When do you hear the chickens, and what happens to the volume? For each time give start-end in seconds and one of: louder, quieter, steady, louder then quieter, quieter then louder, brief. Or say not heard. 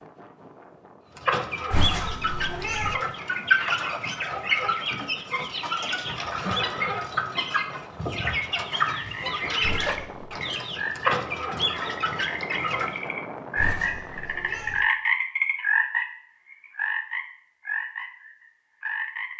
1.1-13.1 steady.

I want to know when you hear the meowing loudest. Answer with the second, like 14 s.
2 s.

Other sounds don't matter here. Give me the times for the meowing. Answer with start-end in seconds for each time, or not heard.
1.7-3.0, 9.6-10.3, 13.6-14.8.